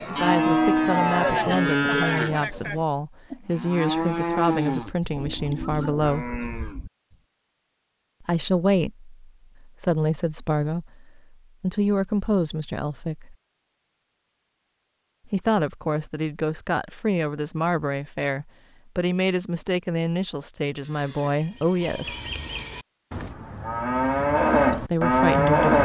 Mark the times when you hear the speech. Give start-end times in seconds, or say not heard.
0.1-6.2, 8.2-13.3, 15.2-22.3, 24.7-25.8.